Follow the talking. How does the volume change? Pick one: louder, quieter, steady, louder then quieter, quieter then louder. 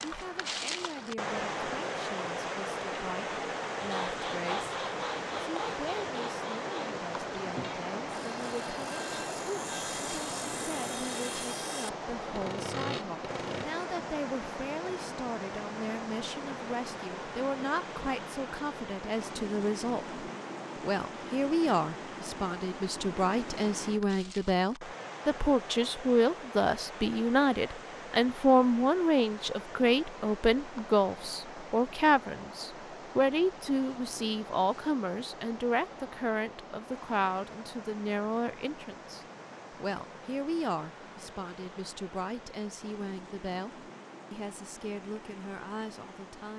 louder then quieter.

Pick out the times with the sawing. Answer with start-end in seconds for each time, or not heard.
3.8-13.7.